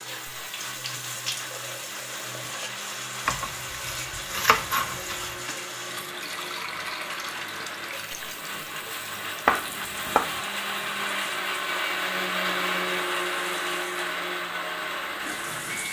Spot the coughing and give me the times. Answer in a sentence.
You can't hear the coughing here.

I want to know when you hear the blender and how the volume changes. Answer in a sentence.
You can hear the blender from 0.0 to 15.8 s, getting louder.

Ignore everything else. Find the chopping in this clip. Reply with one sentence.
You can hear the chopping from 3.2 to 5.3 s and from 9.4 to 10.4 s.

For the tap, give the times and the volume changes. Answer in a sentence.
You can hear the tap from 0.0 to 15.8 s, getting quieter.